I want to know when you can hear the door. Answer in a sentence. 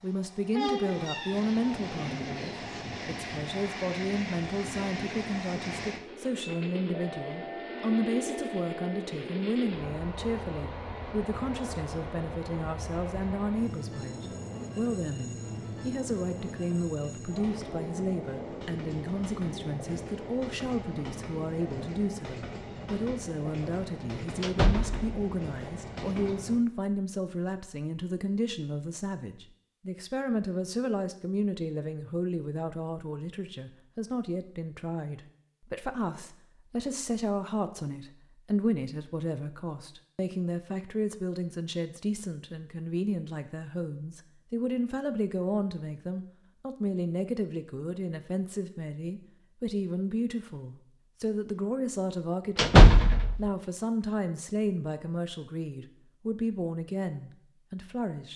You can hear the door from 24.4 to 25.0 s and from 52.5 to 53.4 s.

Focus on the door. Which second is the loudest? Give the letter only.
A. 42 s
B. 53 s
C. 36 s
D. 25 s
B.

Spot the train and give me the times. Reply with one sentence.
The train can be heard from 0.0 to 26.6 s.